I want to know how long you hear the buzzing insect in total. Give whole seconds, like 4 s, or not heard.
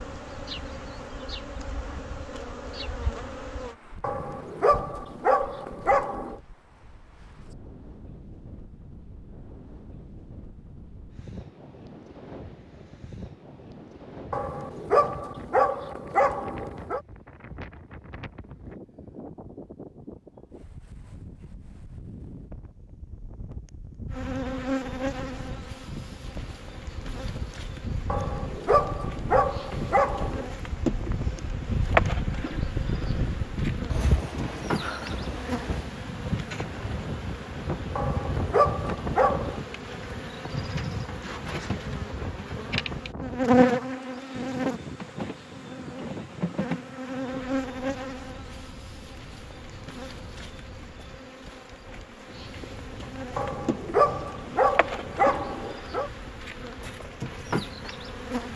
38 s.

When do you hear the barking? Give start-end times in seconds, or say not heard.
4.0-6.3, 14.3-17.0, 28.1-30.4, 38.0-39.6, 53.4-56.1.